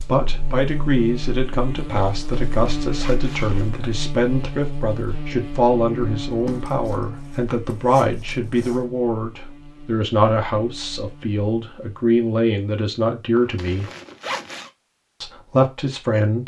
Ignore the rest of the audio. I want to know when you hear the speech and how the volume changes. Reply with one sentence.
You can hear the speech from 0.0 to 13.9 s, at a steady volume; and briefly from 15.2 to 16.4 s.